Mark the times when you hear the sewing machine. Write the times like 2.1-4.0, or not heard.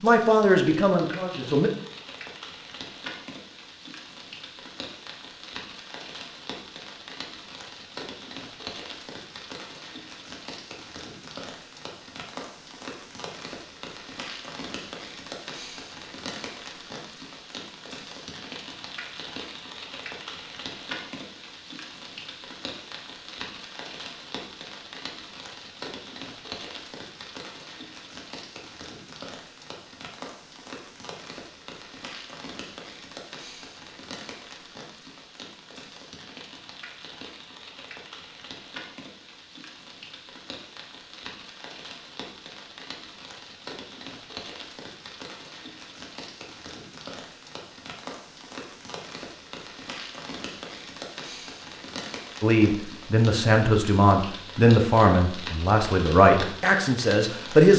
not heard.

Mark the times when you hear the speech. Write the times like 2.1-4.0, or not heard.
0.0-1.7, 52.4-57.7.